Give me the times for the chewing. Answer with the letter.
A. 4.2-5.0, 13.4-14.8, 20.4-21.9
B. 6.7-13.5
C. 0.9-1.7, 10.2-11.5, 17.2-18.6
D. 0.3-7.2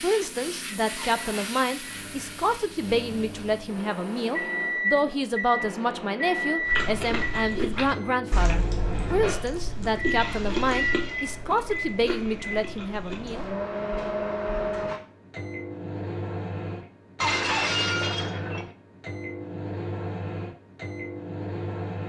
B.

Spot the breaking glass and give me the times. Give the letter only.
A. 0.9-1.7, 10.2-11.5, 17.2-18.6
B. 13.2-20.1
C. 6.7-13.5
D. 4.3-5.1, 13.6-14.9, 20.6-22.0
A.